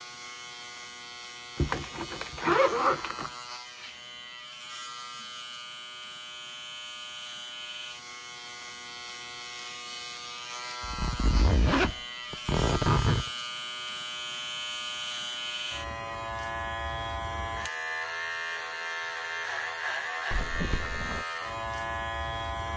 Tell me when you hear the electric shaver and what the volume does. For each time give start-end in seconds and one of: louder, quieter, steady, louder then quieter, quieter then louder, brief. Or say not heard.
0.0-22.7 louder.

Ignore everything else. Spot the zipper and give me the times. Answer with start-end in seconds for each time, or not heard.
1.6-3.3, 10.8-13.3, 20.3-21.2.